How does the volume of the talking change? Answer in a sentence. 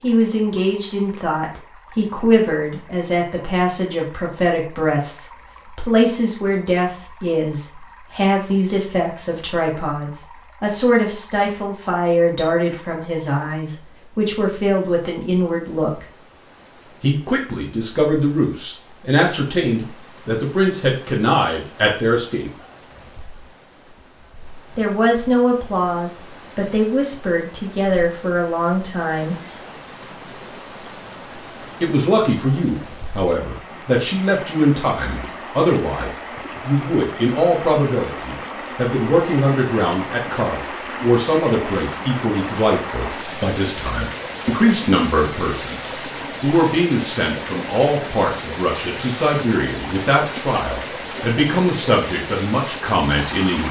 The volume of the talking stays about the same.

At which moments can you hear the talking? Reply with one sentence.
You can hear the talking from 0.0 to 16.1 s, from 17.0 to 22.5 s, from 24.8 to 29.4 s and from 31.8 to 53.6 s.